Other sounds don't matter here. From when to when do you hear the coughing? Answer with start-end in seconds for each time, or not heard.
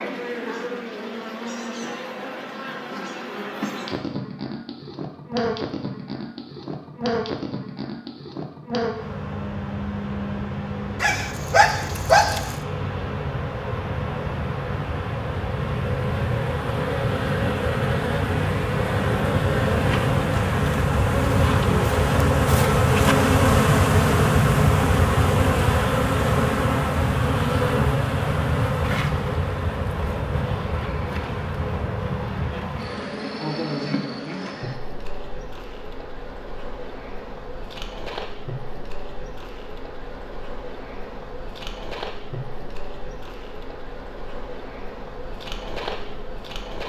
not heard.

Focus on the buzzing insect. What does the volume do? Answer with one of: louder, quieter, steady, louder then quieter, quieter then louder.
louder then quieter.